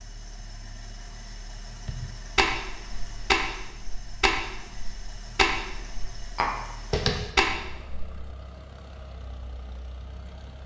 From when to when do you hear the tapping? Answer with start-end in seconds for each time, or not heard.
1.9-8.1.